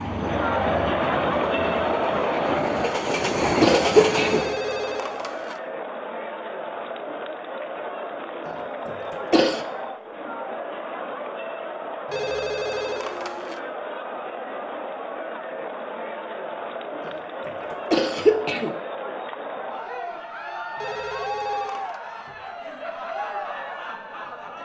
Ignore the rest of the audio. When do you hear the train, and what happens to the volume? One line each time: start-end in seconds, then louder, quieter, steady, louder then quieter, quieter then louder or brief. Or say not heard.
0.0-4.6 louder.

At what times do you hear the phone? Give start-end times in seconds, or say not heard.
4.0-5.6, 12.1-13.6, 20.8-22.0.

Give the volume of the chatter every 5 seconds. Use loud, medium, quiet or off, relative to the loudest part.
loud, medium, medium, medium, medium.